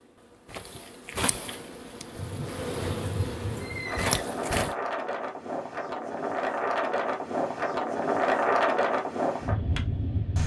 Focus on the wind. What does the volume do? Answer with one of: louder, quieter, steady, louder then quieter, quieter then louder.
louder.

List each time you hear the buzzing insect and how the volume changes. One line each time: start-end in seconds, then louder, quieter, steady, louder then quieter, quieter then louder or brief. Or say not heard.
0.0-4.8 louder.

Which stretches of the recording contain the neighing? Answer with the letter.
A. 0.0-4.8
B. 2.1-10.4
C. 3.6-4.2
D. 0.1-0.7
C.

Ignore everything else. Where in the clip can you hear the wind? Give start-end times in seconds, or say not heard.
2.1-10.4.